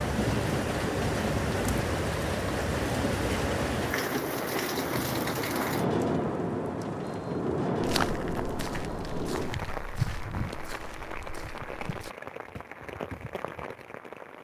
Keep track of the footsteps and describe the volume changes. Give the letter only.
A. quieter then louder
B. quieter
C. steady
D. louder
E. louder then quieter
B.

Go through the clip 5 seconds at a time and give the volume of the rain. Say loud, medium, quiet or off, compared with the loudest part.
loud, loud, medium.